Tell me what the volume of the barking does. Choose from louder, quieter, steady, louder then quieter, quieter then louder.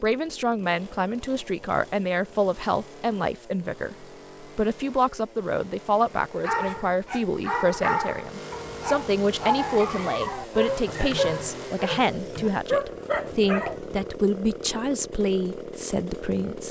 quieter then louder.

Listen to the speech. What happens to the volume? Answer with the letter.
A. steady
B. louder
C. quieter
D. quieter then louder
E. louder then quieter
A.